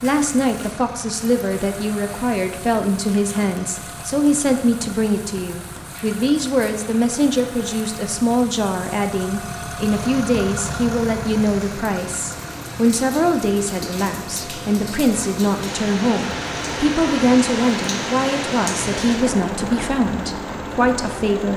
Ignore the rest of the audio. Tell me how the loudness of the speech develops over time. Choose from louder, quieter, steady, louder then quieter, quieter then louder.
steady.